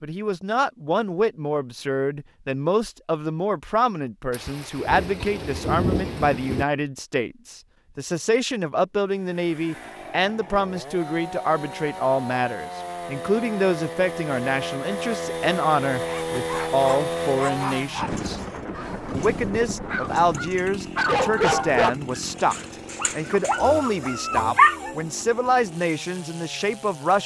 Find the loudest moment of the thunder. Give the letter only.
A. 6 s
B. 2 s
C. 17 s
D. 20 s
A.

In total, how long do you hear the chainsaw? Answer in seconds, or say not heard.
18 s.